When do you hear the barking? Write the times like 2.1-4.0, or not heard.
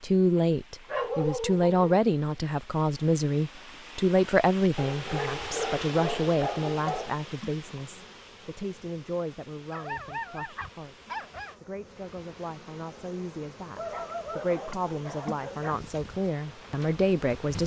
0.8-1.8, 4.8-7.2, 9.7-11.6, 13.8-15.8.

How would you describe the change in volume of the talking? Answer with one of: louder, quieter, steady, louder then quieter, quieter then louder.
quieter then louder.